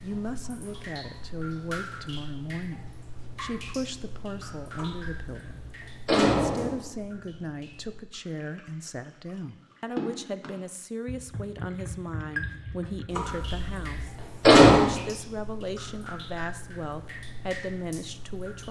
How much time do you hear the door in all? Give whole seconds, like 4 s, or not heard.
4 s.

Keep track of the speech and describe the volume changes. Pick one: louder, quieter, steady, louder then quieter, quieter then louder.
steady.